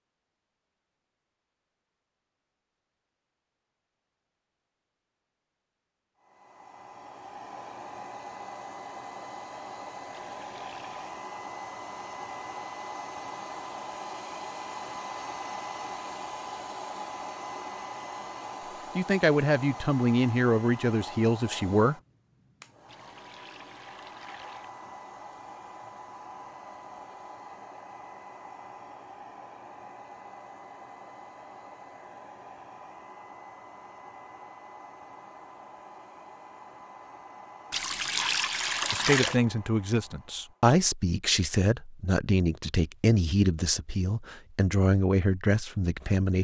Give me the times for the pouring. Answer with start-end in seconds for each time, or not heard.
10.2-10.9, 22.9-24.7, 37.7-39.4.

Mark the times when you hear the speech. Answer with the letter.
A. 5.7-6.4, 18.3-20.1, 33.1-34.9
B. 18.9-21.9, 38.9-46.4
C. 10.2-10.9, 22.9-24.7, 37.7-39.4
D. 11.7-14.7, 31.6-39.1
B.